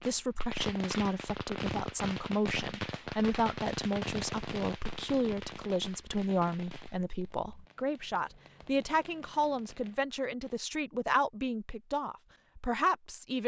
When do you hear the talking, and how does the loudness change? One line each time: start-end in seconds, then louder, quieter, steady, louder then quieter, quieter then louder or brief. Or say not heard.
0.0-13.4 steady.